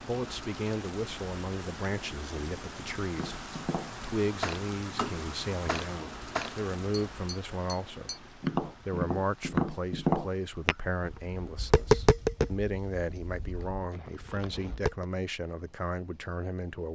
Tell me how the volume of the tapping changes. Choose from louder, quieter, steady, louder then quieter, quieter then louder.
louder then quieter.